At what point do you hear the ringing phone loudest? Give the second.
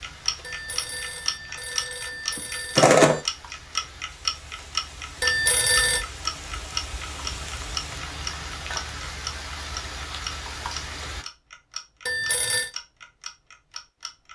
3 s.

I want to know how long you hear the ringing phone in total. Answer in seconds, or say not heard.
4 s.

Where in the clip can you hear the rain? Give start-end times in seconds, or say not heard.
0.0-11.2.